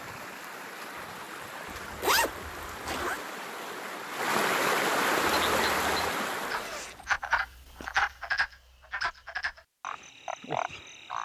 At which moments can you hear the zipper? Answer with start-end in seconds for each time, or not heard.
1.6-3.2, 6.4-7.9.